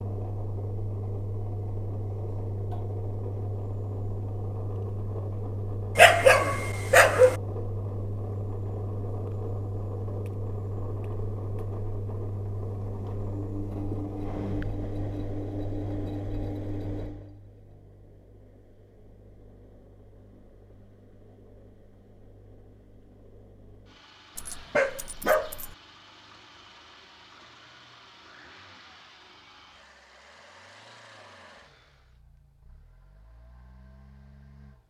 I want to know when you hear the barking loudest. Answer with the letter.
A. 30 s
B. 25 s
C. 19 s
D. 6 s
D.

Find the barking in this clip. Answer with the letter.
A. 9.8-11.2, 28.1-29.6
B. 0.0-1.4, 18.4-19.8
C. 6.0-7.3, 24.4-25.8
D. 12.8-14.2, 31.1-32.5
C.